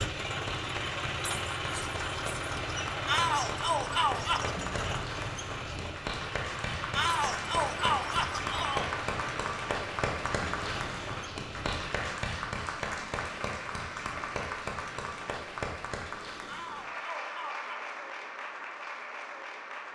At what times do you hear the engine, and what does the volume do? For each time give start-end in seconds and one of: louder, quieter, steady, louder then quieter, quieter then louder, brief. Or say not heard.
0.0-12.2 quieter.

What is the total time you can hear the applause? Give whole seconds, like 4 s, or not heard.
20 s.